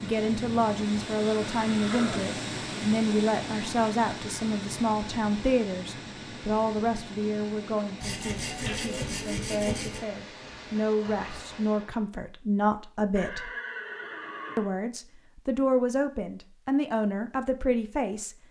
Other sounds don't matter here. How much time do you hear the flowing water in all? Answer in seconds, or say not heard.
12 s.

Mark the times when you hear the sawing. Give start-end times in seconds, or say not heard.
8.0-10.0.